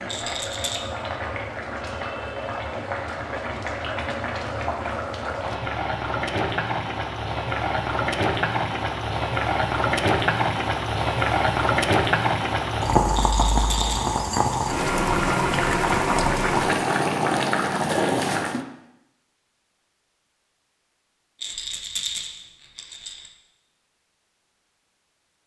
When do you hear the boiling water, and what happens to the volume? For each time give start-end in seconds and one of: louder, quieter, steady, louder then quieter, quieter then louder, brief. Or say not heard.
0.0-18.6 louder.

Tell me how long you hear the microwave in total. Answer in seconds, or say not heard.
not heard.